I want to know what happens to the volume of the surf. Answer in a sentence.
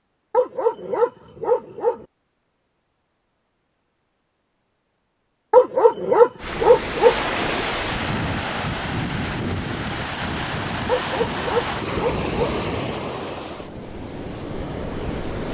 The volume of the surf goes down.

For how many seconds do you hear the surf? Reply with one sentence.
The surf can be heard for 9 seconds in total.